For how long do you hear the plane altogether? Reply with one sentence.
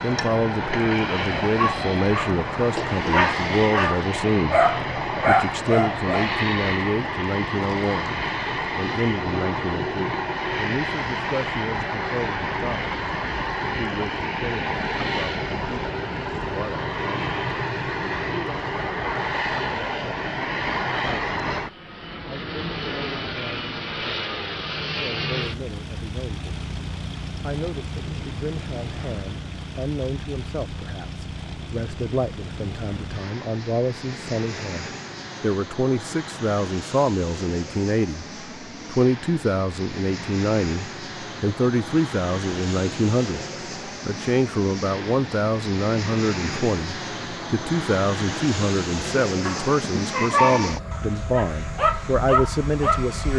You can hear the plane for 53 seconds altogether.